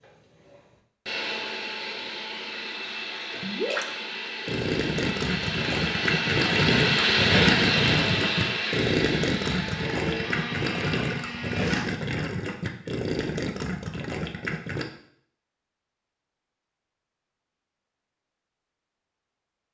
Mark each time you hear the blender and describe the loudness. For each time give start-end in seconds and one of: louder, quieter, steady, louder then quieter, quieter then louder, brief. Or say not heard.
0.0-11.8 louder then quieter.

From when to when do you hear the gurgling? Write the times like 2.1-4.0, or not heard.
3.3-14.8.